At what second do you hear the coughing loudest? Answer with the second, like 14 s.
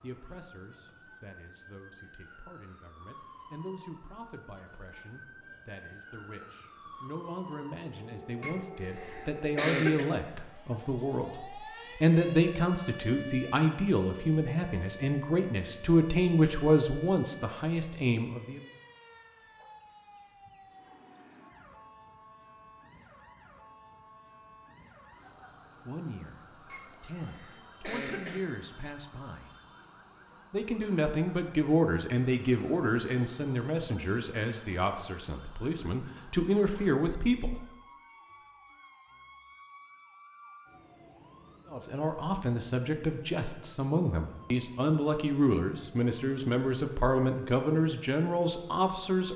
10 s.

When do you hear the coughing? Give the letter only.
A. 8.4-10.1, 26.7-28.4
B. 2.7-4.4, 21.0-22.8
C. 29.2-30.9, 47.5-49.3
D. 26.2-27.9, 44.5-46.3
A.